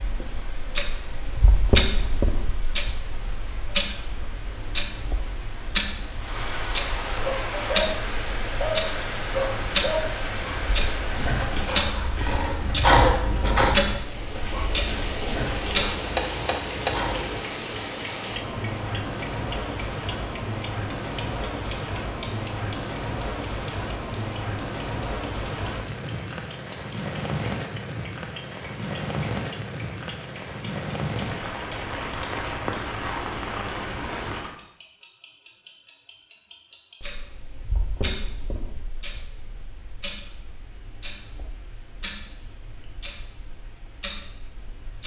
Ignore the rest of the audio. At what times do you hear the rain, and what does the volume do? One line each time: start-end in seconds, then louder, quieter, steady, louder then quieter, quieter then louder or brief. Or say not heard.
0.0-34.6 louder.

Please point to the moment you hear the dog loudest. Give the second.
13 s.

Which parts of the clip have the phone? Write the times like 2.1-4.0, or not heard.
not heard.